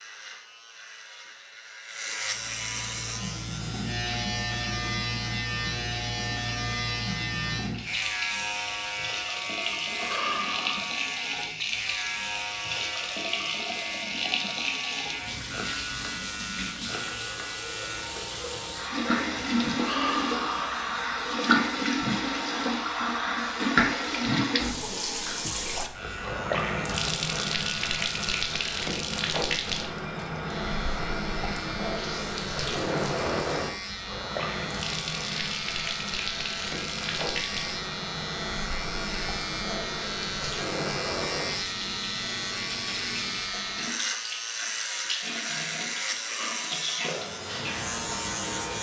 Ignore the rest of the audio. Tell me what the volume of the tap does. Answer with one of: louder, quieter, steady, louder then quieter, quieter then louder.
louder then quieter.